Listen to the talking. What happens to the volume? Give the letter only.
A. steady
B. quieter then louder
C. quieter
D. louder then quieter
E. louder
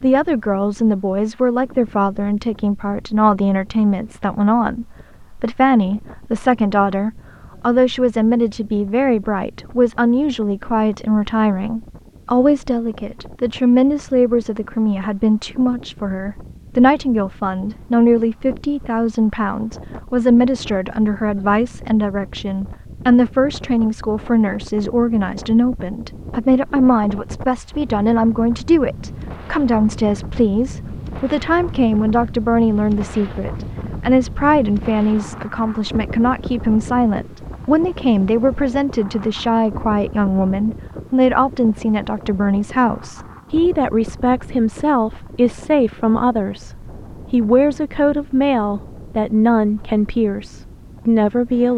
A.